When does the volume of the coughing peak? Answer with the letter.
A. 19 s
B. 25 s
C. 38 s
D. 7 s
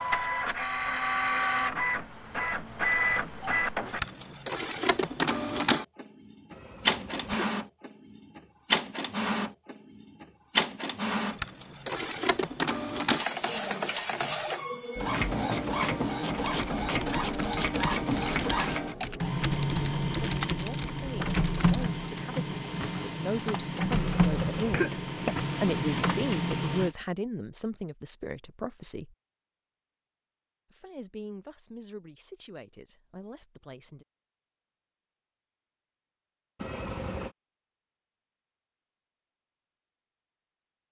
B.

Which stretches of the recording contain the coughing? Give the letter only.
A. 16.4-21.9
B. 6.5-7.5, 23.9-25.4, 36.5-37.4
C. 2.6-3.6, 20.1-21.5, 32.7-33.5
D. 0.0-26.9
B.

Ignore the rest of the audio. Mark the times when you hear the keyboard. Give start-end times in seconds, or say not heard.
16.4-21.9.